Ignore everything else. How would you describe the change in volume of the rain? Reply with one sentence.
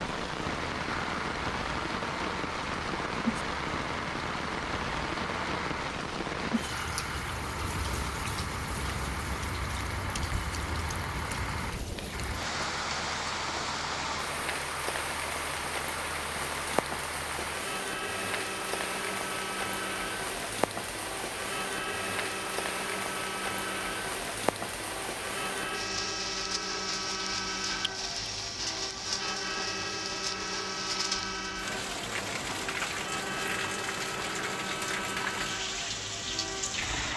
The loudness of the rain stays about the same.